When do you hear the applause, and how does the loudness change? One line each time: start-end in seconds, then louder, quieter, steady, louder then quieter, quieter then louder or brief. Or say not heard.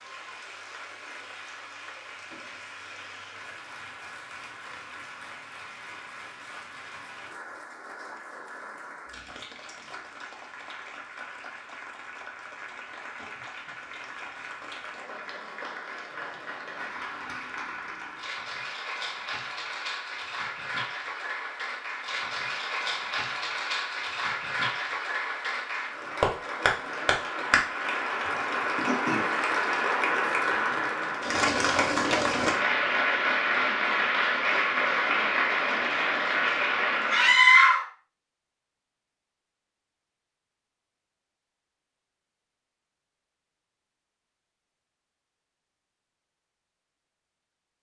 0.0-37.5 louder.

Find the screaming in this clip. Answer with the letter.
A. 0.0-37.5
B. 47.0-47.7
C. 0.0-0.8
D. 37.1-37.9
D.